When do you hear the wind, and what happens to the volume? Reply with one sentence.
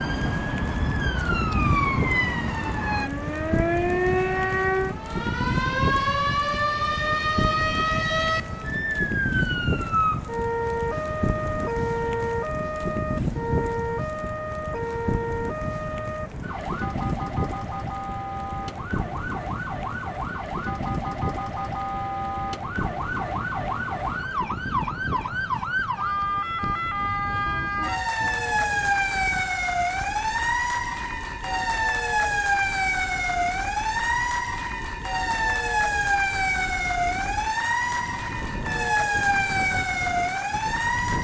The wind can be heard from 0.0 to 41.1 s, getting quieter.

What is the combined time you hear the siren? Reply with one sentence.
The siren can be heard for 41 seconds in total.